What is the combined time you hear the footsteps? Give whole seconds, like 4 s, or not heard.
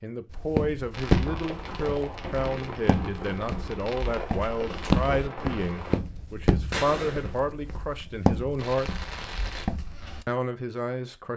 10 s.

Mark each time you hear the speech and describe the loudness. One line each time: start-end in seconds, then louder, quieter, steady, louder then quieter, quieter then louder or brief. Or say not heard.
0.0-9.1 steady
10.2-11.3 brief.